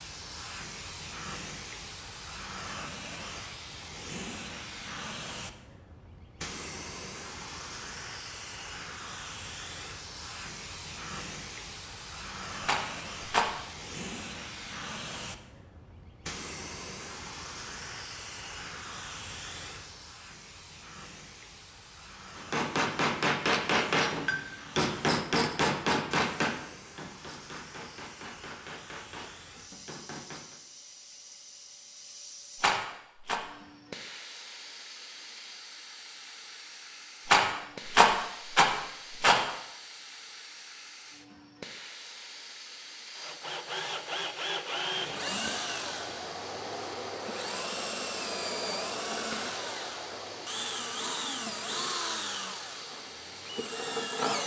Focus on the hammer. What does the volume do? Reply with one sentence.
The loudness of the hammer goes down.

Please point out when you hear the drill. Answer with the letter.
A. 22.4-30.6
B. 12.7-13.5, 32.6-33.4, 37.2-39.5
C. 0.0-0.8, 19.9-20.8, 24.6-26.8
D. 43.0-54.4
D.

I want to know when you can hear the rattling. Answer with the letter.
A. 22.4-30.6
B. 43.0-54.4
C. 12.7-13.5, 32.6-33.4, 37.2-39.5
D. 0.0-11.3
C.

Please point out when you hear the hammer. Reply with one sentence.
You can hear the hammer from 22.4 to 30.6 s.